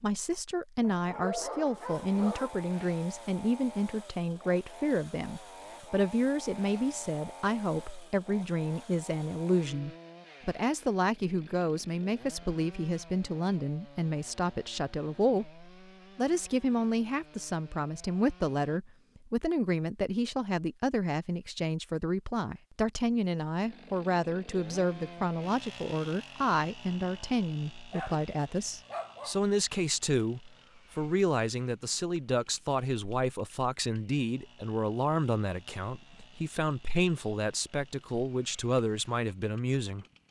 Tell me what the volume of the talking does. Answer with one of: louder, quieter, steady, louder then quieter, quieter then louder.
steady.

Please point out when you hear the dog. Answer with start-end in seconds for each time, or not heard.
0.8-2.6, 27.9-29.4.